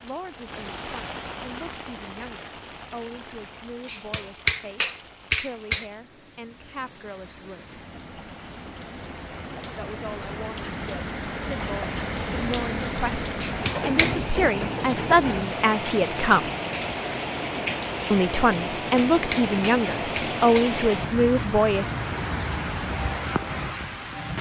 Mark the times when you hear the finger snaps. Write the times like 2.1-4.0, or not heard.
3.9-5.9, 13.4-14.2, 18.8-20.7.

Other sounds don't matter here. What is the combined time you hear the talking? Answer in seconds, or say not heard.
18 s.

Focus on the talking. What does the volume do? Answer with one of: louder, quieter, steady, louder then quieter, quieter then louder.
louder.